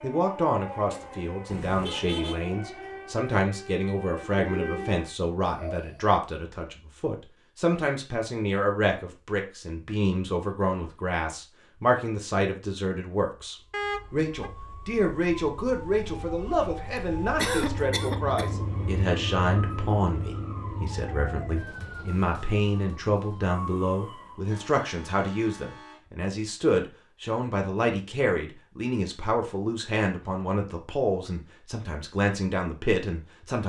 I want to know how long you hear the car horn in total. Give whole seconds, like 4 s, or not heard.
3 s.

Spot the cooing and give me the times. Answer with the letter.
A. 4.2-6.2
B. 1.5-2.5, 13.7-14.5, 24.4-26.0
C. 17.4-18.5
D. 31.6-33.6
A.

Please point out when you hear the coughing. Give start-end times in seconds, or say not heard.
17.4-18.5.